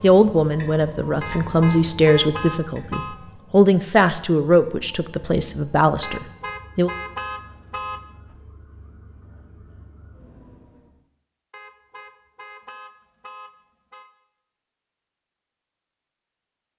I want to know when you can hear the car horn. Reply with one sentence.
You can hear the car horn from 1.2 to 3.1 s, from 6.0 to 8.0 s and from 11.5 to 14.1 s.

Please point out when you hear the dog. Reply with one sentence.
The dog can't be heard in this clip.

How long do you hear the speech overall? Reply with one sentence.
You can hear the speech for 7 seconds altogether.